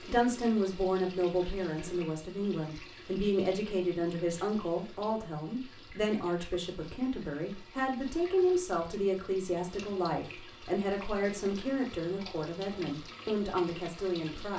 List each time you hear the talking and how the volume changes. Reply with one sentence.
You can hear the talking from 0.1 to 14.5 s, at a steady volume.